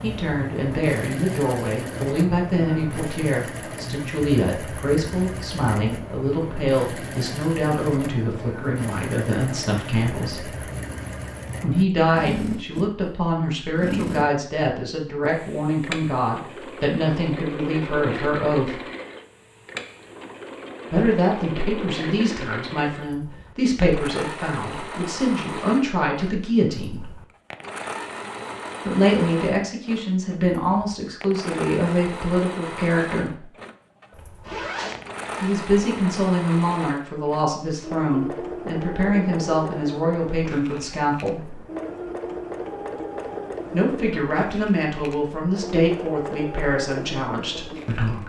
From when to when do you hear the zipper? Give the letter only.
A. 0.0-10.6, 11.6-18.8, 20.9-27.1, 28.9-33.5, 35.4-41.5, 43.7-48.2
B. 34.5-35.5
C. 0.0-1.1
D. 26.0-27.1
B.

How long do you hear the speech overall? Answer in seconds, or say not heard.
39 s.